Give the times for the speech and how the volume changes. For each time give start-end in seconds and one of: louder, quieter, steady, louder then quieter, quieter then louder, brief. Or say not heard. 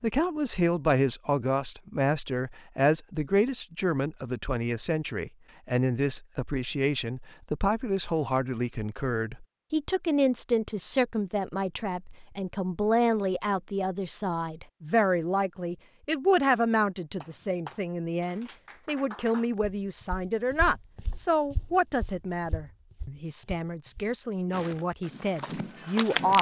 0.0-26.3 steady.